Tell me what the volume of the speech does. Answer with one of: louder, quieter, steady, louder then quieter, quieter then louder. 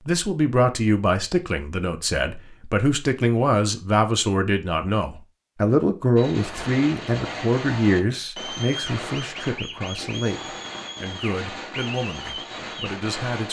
quieter.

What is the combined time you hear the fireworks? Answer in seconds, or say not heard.
7 s.